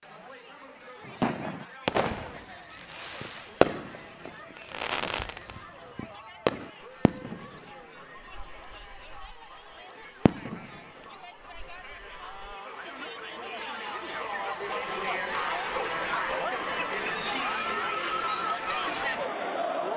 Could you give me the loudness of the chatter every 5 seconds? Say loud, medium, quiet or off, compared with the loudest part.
quiet, quiet, medium, loud.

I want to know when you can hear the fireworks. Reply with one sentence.
You can hear the fireworks from 1.1 to 9.4 s, from 10.2 to 10.8 s and from 11.6 to 12.6 s.